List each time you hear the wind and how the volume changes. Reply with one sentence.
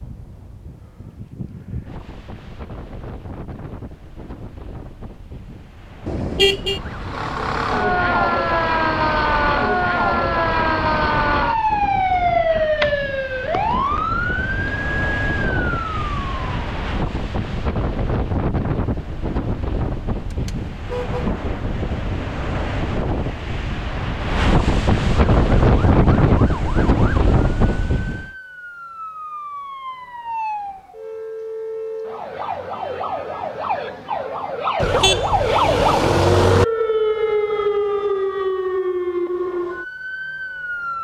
You can hear the wind from 0.0 to 28.3 s, getting louder.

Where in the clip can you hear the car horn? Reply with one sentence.
You can hear the car horn from 6.0 to 6.8 s, from 20.2 to 21.4 s and from 34.8 to 36.6 s.